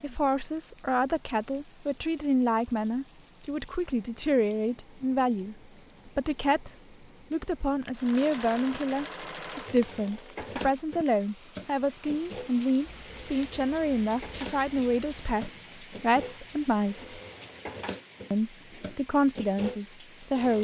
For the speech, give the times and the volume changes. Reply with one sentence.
You can hear the speech from 0.0 to 17.2 s, at a steady volume; and briefly from 18.3 to 20.6 s.